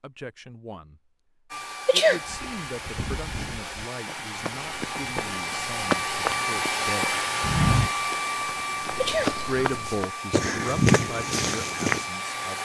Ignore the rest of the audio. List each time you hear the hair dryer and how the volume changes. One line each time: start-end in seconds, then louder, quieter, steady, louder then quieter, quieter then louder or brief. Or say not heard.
1.5-12.6 louder then quieter.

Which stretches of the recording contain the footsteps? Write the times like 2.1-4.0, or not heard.
2.2-12.1.